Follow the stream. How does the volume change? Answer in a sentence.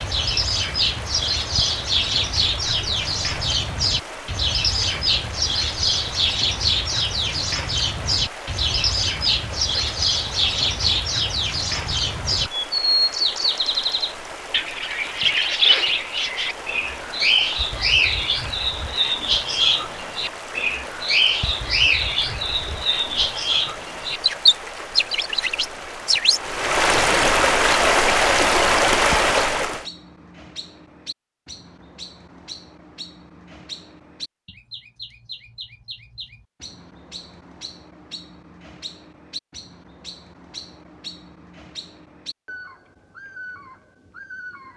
The loudness of the stream goes up.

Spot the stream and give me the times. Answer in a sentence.
The stream can be heard from 0.0 to 29.9 s.